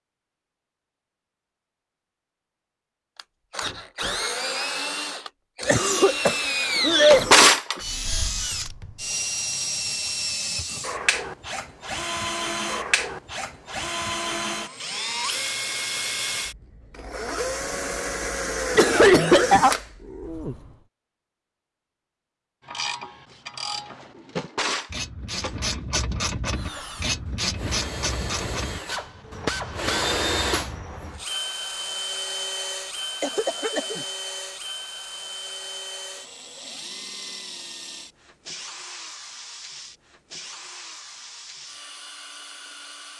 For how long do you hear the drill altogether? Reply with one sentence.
You can hear the drill for 34 seconds altogether.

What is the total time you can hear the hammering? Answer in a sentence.
You can't hear the hammering here.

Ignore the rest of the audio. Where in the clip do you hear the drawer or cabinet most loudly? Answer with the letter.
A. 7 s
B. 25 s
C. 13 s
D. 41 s
A.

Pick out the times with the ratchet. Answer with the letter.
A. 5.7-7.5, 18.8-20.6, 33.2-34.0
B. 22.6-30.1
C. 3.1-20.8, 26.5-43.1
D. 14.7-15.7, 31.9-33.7
B.